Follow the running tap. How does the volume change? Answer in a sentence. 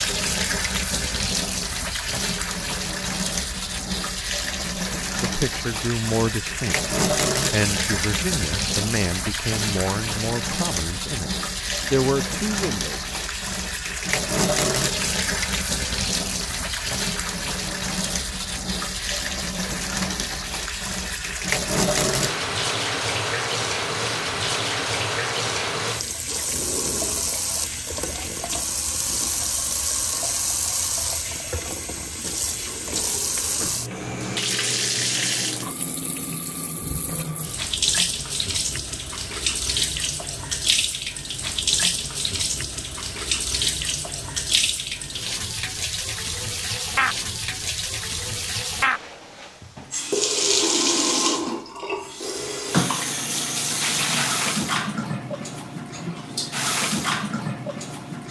The volume of the running tap stays about the same.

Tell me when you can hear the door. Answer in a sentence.
The door can be heard from 26.4 to 27.2 s and from 32.4 to 33.9 s.